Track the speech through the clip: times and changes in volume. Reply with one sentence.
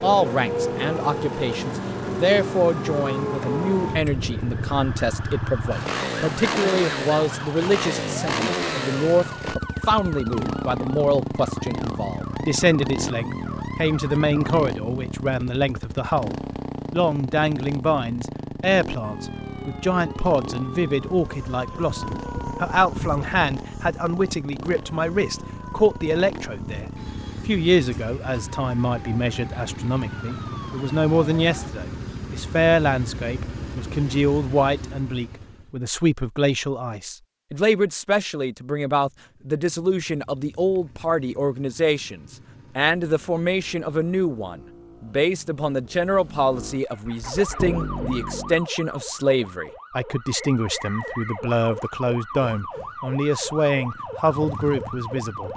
You can hear the speech from 0.0 to 55.5 s, at a steady volume.